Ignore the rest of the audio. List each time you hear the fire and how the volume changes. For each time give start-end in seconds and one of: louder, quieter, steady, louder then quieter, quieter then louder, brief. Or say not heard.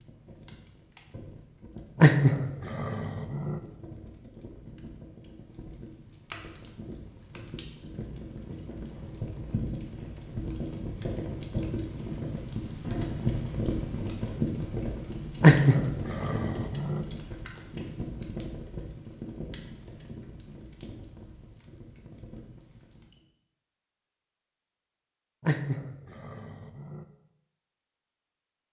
0.0-23.2 louder then quieter.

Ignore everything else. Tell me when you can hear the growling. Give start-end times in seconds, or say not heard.
1.9-3.6, 15.4-17.1, 25.4-27.1.